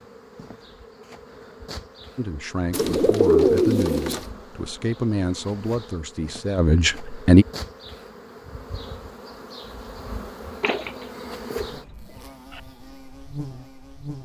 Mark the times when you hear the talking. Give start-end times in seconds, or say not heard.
2.1-7.5.